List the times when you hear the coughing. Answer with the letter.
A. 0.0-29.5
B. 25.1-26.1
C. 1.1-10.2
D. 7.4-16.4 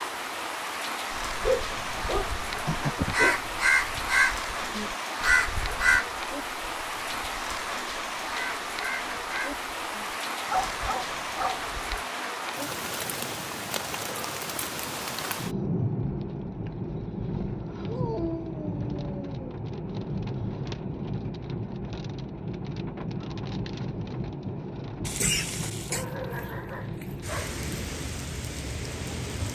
B.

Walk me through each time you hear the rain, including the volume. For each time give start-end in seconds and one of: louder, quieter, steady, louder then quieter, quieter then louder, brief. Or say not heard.
0.0-29.5 steady.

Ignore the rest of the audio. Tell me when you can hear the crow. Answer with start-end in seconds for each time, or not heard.
1.1-10.2.